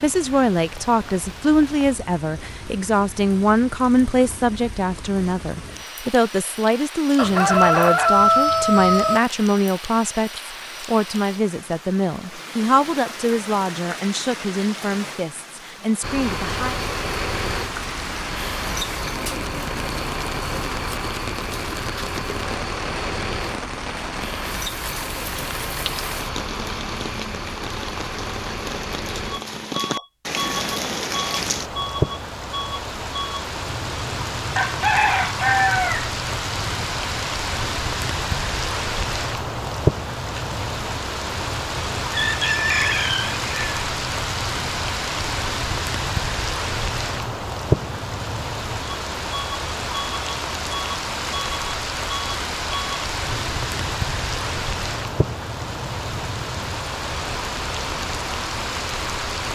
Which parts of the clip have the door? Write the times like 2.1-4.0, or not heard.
not heard.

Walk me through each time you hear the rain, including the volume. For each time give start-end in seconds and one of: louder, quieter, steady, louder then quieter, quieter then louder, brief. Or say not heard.
0.0-59.4 louder.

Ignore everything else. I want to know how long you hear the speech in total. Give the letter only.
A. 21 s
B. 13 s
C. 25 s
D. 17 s
D.